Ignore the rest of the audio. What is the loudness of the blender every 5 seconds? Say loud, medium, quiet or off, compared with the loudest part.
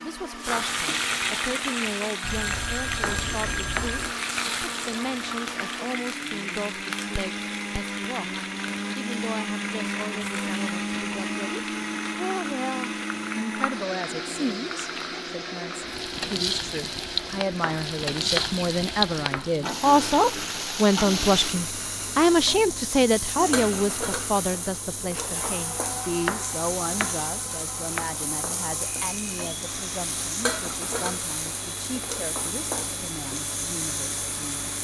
medium, loud, loud, medium, medium, medium, medium.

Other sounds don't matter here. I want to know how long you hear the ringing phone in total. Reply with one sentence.
You can hear the ringing phone for 2 seconds altogether.